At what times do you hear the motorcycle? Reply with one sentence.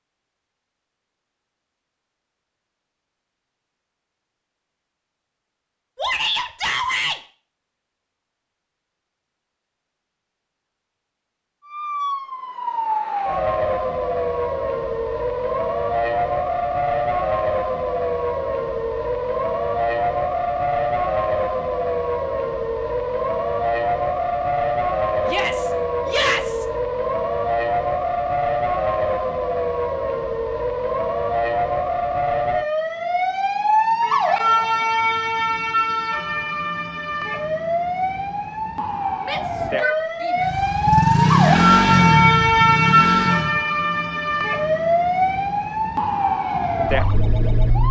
The motorcycle can be heard from 40.4 to 43.6 s.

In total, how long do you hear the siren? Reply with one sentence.
The siren can be heard for 36 seconds in total.